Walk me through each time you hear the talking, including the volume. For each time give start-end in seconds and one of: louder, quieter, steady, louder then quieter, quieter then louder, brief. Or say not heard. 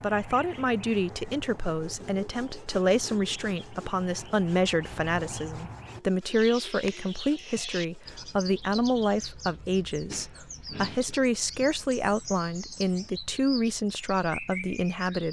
0.0-15.2 steady.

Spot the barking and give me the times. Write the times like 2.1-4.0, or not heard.
not heard.